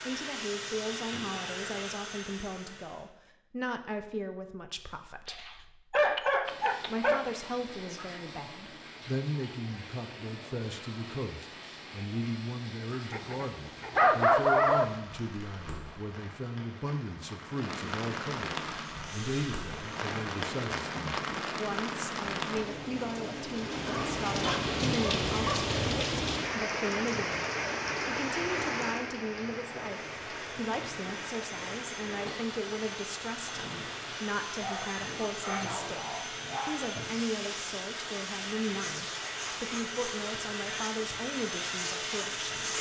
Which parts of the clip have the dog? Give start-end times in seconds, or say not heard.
5.2-7.2, 13.1-14.9, 23.9-25.9, 34.6-37.0.